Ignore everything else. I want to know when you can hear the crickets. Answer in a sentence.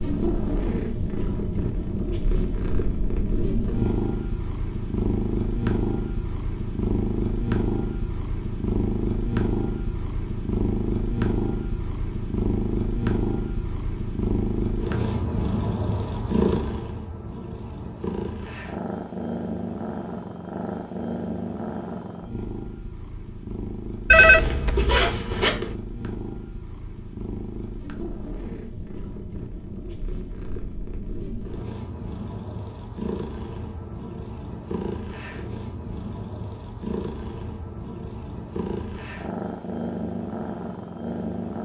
The crickets can't be heard in this clip.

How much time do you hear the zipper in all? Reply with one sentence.
The zipper can be heard for 2 seconds in total.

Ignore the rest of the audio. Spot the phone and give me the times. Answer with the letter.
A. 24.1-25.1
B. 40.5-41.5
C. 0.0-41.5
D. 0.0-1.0
A.